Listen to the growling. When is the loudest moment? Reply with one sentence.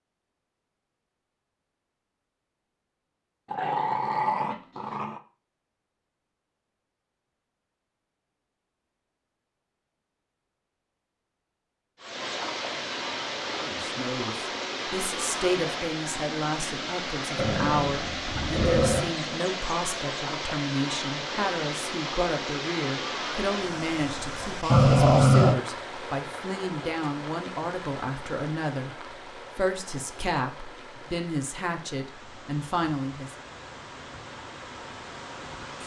The volume of the growling peaks at 25 seconds.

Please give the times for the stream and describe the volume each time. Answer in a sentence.
The stream can be heard from 11.9 to 35.8 s, getting quieter.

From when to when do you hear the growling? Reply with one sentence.
You can hear the growling from 3.5 to 5.2 s, from 17.4 to 19.1 s and from 24.7 to 25.6 s.